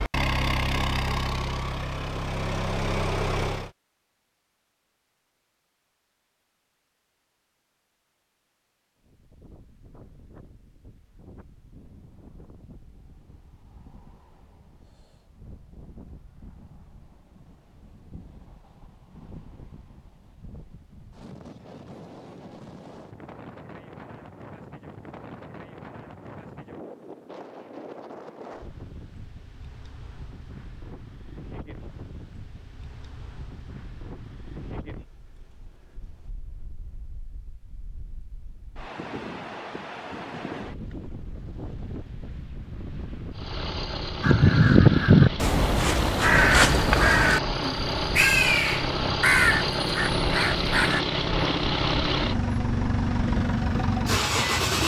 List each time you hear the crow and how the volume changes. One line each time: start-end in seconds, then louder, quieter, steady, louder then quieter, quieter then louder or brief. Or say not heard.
44.2-51.0 quieter.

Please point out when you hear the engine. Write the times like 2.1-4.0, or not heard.
0.0-3.7, 43.3-54.8.